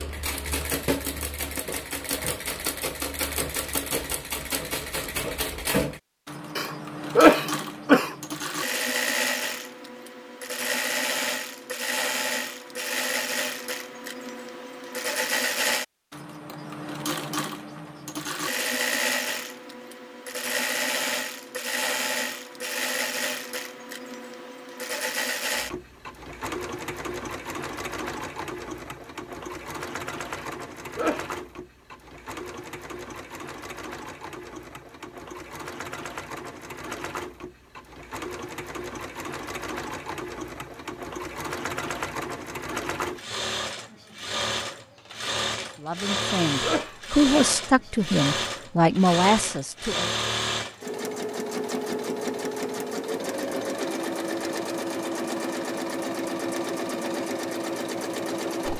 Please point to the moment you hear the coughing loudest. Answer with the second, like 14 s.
7 s.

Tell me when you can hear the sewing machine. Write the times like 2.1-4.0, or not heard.
0.0-58.7.